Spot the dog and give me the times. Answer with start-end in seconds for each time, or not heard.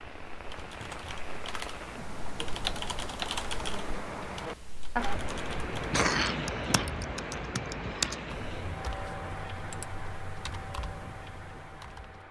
not heard.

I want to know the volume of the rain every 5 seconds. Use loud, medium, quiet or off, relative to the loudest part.
loud, loud, medium.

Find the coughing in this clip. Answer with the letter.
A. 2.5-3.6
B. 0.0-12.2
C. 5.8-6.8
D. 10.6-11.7
C.